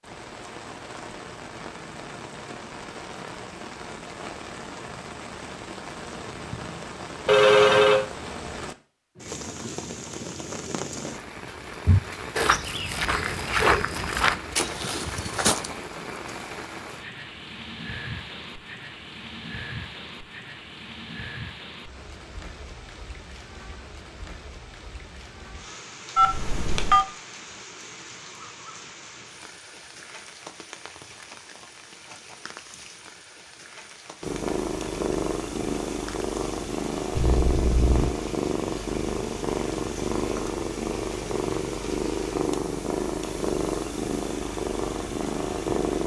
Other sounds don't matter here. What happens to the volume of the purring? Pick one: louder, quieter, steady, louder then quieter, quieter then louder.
steady.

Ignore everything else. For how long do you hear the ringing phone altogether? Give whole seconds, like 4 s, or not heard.
3 s.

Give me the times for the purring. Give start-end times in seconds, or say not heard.
34.2-46.0.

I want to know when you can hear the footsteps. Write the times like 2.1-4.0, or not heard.
11.8-15.8.